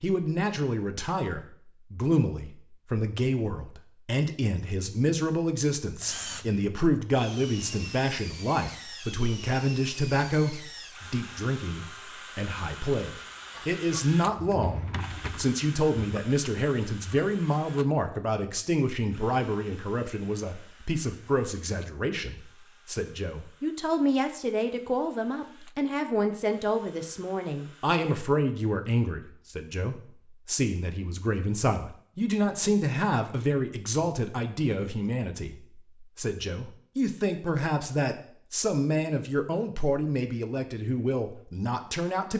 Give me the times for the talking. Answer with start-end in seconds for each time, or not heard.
0.0-42.3.